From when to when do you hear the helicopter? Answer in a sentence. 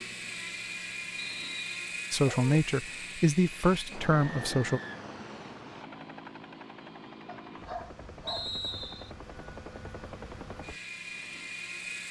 The helicopter can be heard from 0.0 to 12.0 s.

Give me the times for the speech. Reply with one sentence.
You can hear the speech from 2.1 to 4.8 s.